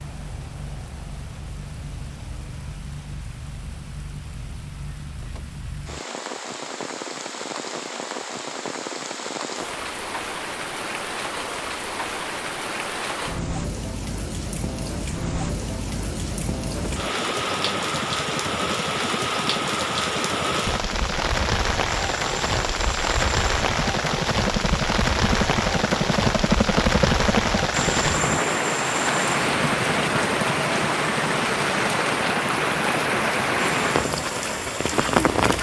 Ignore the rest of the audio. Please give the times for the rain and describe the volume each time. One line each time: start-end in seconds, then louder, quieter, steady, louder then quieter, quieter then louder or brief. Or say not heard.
0.0-35.5 louder.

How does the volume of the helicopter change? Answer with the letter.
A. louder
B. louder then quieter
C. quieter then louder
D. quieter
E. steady
B.